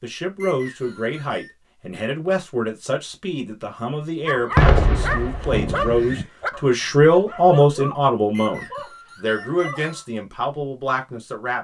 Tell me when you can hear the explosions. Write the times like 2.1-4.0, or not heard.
4.5-5.9.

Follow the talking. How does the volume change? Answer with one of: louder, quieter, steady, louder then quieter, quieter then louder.
louder then quieter.